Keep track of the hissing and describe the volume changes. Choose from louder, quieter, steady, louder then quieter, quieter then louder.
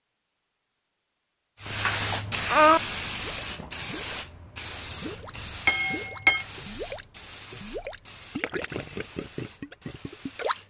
quieter.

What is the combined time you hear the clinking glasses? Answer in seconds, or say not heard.
2 s.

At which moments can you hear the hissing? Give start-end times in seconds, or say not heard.
1.6-10.6.